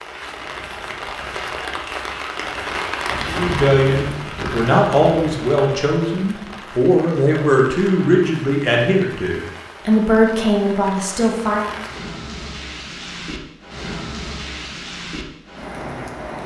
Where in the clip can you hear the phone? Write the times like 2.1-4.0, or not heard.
not heard.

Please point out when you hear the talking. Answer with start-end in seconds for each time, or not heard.
3.2-11.7.